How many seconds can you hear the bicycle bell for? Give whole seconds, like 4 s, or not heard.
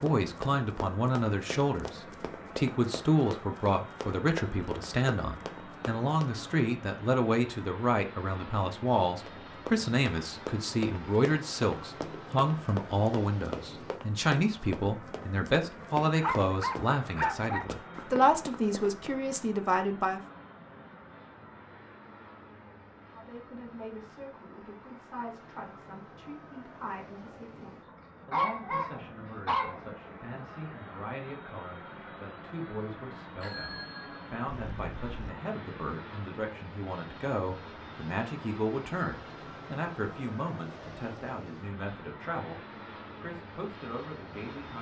2 s.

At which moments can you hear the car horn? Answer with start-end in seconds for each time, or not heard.
not heard.